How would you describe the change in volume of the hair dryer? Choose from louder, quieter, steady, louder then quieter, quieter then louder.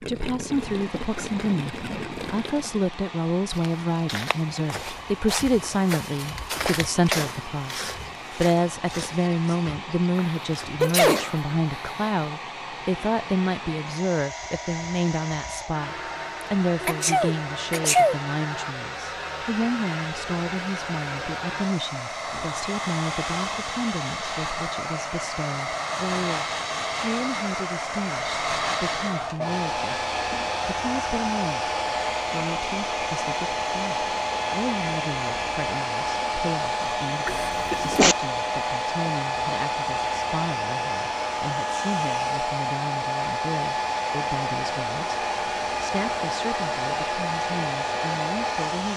louder.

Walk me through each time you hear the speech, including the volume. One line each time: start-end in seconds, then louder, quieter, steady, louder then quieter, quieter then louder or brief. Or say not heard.
0.0-48.9 quieter.